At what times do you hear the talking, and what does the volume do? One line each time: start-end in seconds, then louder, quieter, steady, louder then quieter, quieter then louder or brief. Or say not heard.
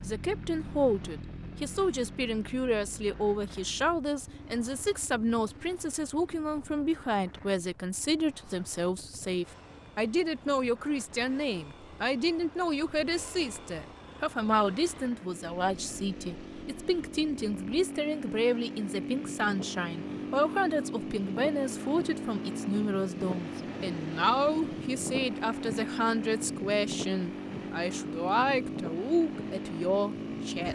0.0-30.7 steady.